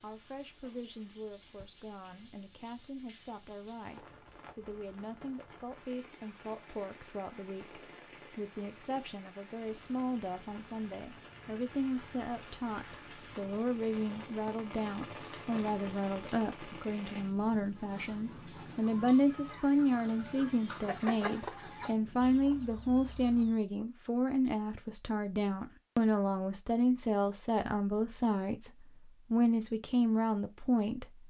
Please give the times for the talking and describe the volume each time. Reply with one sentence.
The talking can be heard from 0.0 to 31.2 s, getting louder.